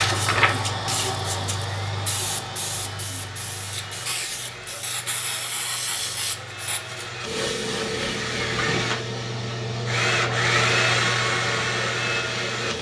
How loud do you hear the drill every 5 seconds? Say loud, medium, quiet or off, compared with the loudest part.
quiet, medium, loud.